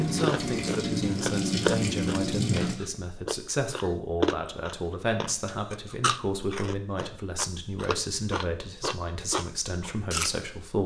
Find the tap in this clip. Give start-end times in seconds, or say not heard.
0.0-2.8.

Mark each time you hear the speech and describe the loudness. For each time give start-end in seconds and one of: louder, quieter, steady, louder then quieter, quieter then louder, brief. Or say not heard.
0.0-10.8 steady.